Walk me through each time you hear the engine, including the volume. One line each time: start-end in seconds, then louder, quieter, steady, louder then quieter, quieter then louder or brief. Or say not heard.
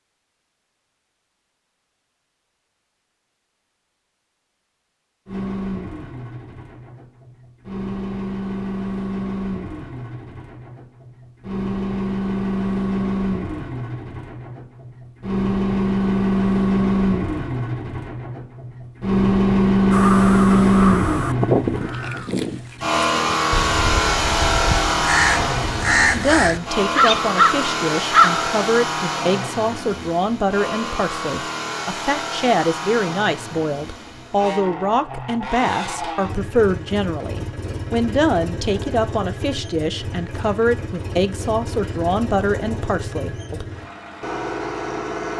5.2-45.3 louder then quieter.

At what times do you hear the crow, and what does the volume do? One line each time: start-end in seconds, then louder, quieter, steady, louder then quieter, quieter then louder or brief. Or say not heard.
19.9-28.4 quieter then louder.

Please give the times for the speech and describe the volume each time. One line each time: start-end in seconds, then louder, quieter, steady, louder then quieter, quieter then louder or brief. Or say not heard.
26.1-43.6 steady.